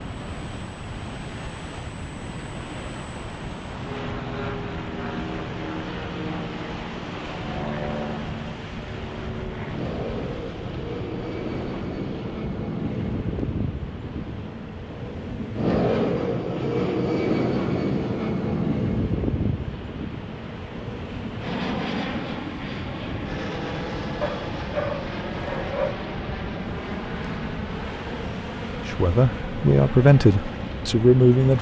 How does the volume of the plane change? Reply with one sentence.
The loudness of the plane goes up, then down.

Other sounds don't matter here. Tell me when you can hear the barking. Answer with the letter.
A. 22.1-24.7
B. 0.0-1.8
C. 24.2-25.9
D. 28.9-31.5
C.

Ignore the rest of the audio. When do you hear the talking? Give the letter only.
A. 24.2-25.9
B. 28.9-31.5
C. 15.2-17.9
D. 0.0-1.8
B.